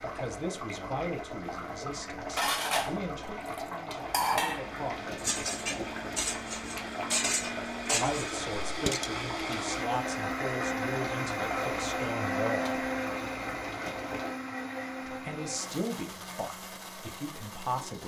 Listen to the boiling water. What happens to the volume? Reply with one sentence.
The loudness of the boiling water stays about the same.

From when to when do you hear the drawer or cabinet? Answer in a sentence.
You can't hear the drawer or cabinet here.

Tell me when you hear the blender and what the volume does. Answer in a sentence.
The blender can be heard from 0.0 to 18.0 s, getting louder then quieter.